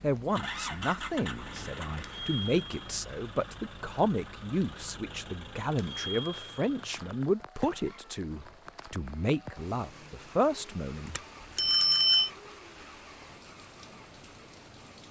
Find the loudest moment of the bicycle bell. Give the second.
12 s.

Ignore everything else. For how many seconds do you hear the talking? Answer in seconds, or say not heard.
11 s.